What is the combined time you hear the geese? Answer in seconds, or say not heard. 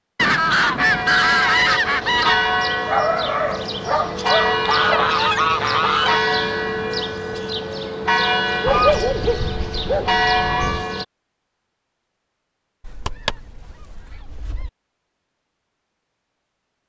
8 s.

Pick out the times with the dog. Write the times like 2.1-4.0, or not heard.
2.9-5.2, 8.6-10.2.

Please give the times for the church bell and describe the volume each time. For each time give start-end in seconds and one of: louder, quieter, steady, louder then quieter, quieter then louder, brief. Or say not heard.
0.8-11.1 steady.